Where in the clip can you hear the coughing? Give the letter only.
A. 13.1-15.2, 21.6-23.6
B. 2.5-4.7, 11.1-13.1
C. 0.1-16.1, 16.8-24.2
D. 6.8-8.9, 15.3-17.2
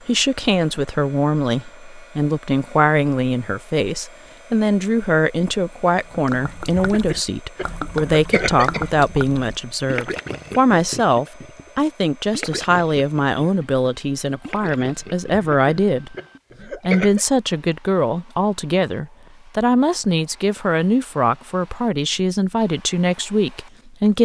D.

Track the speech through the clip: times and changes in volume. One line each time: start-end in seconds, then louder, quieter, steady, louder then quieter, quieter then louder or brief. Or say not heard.
0.1-16.1 steady
16.8-24.2 steady.